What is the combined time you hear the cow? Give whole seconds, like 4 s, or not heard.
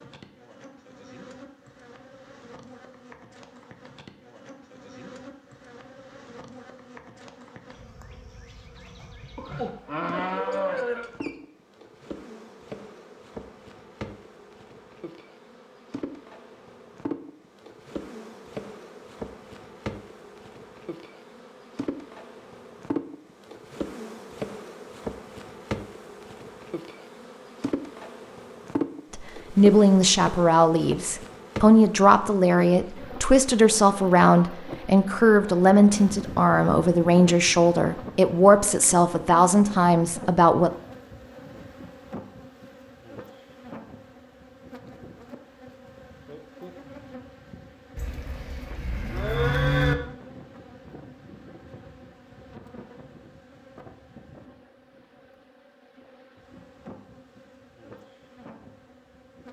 4 s.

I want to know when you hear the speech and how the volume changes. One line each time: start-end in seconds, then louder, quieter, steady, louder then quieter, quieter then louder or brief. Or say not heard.
29.1-40.7 steady.